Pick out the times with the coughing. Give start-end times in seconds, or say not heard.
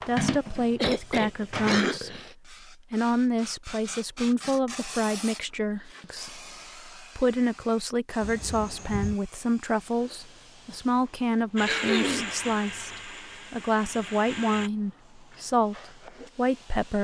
0.8-2.4, 8.2-9.2, 11.7-12.3.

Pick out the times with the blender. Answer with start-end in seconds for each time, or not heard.
0.0-1.8, 11.6-14.7.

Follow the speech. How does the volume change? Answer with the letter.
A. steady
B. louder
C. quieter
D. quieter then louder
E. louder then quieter
A.